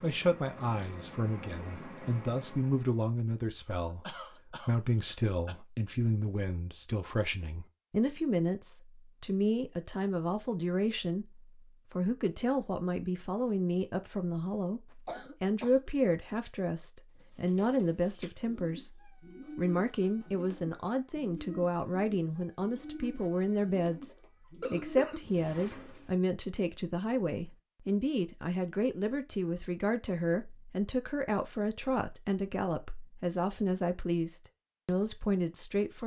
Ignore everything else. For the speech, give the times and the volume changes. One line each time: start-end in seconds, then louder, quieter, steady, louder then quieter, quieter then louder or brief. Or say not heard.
0.0-36.0 steady.